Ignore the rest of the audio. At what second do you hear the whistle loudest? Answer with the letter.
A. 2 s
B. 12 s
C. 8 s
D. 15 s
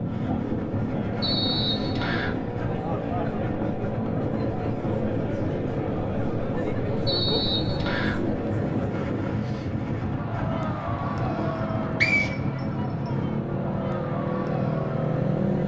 B.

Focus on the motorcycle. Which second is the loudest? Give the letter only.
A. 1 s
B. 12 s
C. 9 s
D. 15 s
D.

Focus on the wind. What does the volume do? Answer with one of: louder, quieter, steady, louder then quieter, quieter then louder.
steady.